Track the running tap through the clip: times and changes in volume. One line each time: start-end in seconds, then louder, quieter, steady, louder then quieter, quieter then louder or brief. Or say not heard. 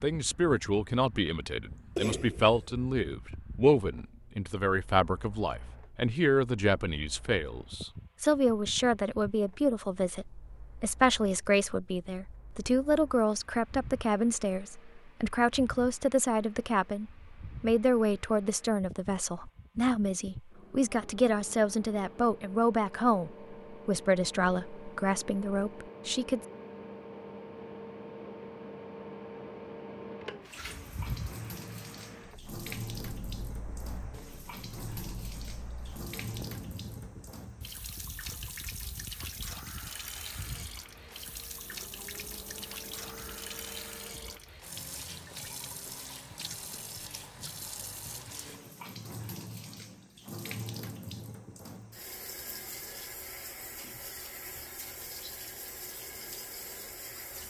30.4-57.4 steady.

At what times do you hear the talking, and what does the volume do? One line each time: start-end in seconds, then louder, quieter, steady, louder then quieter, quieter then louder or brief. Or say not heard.
0.0-26.4 steady.